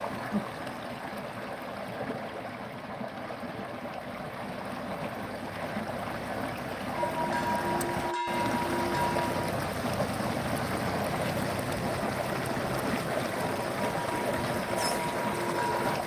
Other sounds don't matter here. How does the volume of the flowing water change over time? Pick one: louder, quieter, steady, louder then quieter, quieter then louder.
louder.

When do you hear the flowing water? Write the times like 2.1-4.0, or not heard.
0.0-16.0.